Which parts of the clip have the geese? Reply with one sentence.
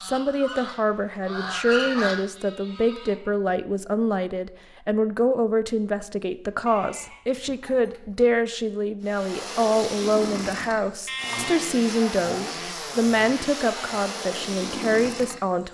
The geese can be heard from 0.0 to 2.2 s.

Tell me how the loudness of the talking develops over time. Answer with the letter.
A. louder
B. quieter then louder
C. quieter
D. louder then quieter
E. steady
E.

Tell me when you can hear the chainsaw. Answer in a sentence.
The chainsaw can be heard from 9.0 to 15.6 s.